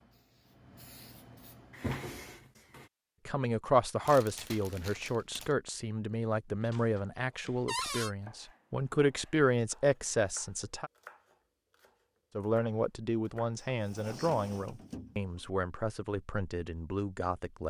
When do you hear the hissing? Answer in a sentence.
The hissing can be heard from 0.0 to 1.9 s.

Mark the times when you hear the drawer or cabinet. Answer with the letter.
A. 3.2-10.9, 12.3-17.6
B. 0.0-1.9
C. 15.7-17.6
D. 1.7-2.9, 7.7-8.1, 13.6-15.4
D.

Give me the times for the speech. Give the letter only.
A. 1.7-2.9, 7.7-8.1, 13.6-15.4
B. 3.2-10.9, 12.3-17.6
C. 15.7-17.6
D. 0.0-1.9
B.